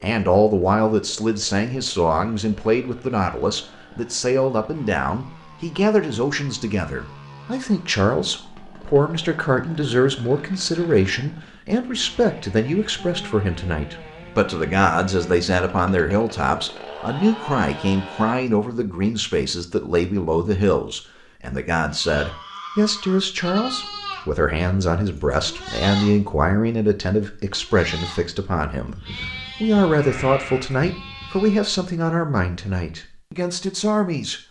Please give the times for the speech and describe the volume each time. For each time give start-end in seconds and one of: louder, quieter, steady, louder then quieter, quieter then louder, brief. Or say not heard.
0.0-34.4 steady.